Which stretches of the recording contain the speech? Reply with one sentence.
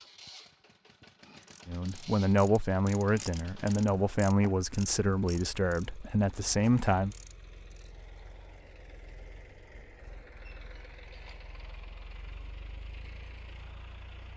You can hear the speech from 1.6 to 7.2 s.